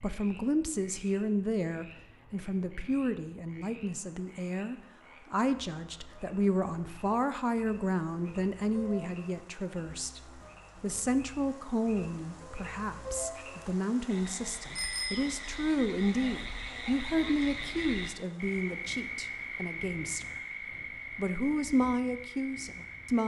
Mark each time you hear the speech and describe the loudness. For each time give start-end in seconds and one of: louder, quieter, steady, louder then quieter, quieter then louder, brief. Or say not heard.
0.0-20.4 steady
21.1-23.2 brief.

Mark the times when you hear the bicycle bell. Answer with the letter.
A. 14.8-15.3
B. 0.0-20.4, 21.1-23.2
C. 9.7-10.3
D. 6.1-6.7
A.